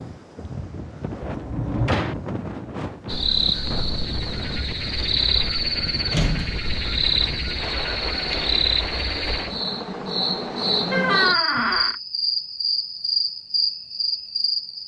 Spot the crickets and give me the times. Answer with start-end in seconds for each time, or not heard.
3.0-14.8.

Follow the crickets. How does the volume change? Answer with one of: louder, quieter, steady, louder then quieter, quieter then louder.
steady.